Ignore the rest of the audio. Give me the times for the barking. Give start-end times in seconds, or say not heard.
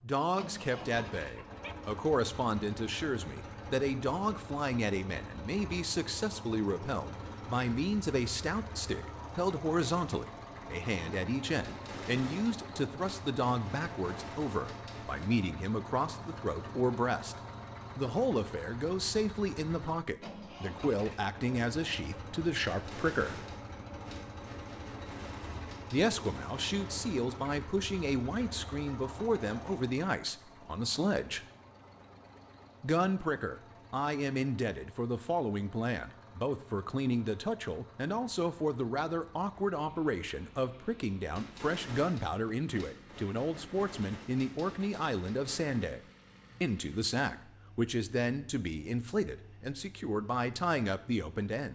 1.3-1.8.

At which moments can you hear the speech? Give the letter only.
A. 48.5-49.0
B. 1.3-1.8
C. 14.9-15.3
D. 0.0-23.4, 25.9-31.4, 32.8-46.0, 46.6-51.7
D.